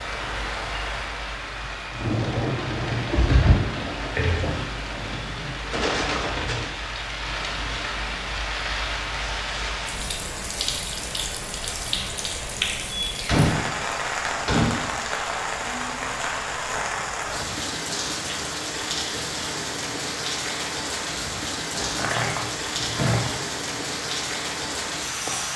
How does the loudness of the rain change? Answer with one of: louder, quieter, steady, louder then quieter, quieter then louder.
steady.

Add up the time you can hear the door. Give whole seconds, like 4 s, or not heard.
5 s.